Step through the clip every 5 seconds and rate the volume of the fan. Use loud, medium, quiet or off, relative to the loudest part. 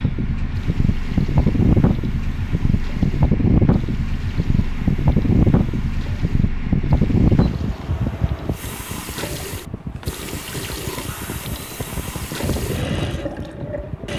loud, loud, medium.